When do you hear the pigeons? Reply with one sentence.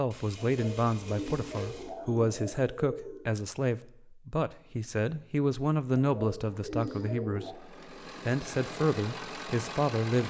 The pigeons can be heard from 0.4 to 3.2 s and from 6.0 to 7.5 s.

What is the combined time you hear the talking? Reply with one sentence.
You can hear the talking for 10 seconds altogether.